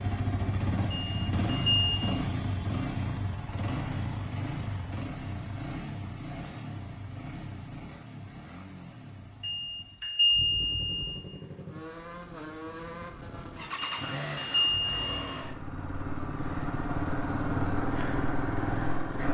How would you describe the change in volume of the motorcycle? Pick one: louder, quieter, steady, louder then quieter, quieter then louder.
quieter then louder.